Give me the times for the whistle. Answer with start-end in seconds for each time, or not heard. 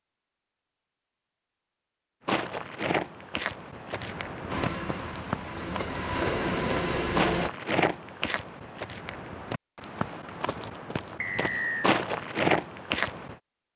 11.2-11.9.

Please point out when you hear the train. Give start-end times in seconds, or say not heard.
4.5-7.5.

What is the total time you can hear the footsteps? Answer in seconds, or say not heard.
11 s.